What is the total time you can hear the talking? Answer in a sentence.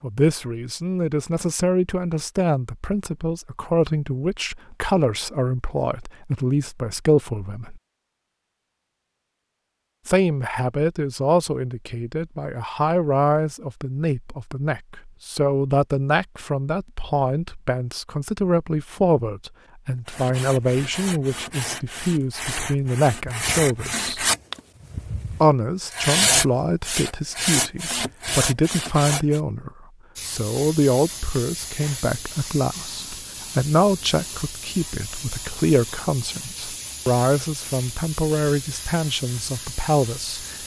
The talking can be heard for 37 seconds in total.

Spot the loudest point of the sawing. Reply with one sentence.
The loudest moment of the sawing is at 26 seconds.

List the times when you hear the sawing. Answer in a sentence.
The sawing can be heard from 20.1 to 29.4 s.